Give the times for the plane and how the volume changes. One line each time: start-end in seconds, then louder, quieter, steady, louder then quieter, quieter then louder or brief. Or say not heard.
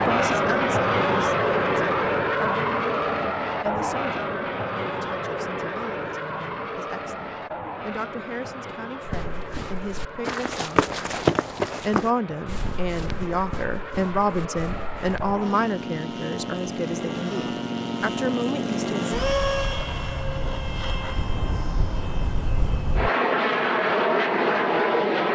0.0-25.2 quieter then louder.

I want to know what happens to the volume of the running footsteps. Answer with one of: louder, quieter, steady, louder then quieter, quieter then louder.
louder then quieter.